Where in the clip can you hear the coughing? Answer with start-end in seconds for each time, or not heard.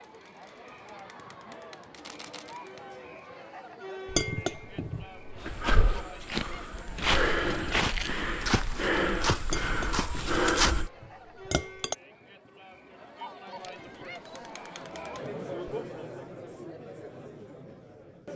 not heard.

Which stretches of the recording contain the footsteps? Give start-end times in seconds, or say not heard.
5.4-10.9.